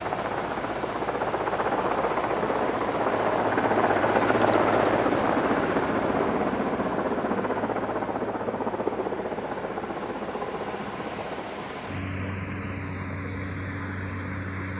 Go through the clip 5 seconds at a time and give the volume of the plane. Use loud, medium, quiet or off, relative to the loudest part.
loud, loud, medium.